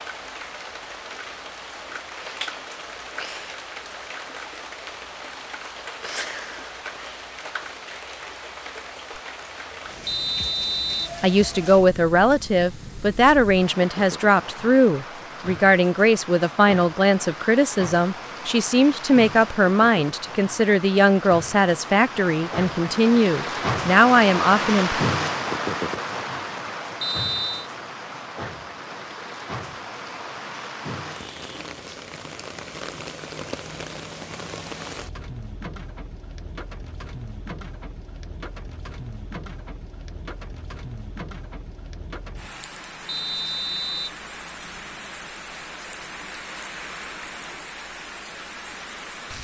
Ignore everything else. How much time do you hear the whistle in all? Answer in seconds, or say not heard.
3 s.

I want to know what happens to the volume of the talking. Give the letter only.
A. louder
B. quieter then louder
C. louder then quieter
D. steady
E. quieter
D.